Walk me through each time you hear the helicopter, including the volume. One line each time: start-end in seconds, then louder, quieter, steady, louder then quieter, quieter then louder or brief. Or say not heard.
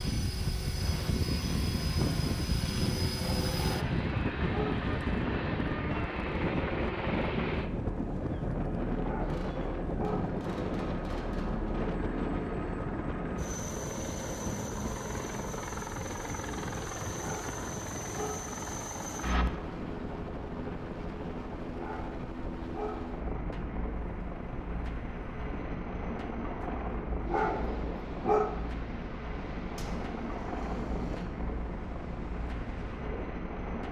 0.0-33.8 steady.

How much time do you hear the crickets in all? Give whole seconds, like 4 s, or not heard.
not heard.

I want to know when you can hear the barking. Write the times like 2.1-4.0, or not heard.
3.5-4.8, 8.9-10.3, 17.1-18.5, 21.7-23.1, 27.2-28.6.